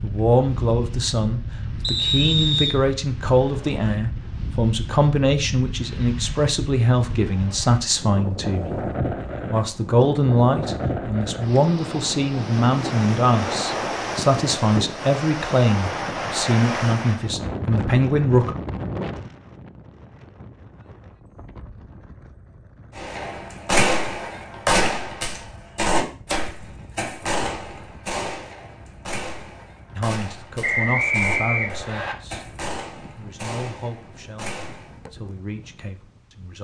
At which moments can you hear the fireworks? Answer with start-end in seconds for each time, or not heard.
22.9-35.0.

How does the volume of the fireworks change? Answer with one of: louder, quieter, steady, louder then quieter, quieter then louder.
quieter.